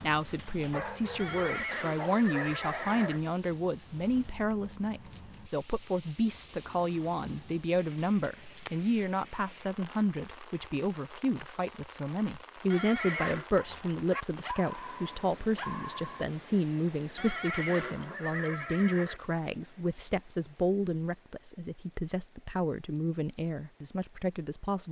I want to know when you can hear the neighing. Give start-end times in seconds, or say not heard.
1.1-3.2, 12.7-13.5, 17.1-19.2.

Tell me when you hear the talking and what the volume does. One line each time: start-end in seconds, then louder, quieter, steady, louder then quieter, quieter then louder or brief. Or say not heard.
0.0-24.8 steady.